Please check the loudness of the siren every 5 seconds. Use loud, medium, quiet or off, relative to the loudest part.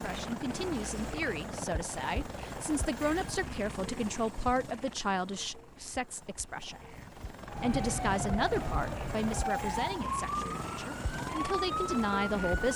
off, loud, loud.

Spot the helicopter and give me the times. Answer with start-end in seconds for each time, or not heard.
0.0-12.7.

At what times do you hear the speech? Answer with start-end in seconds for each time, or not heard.
0.0-12.7.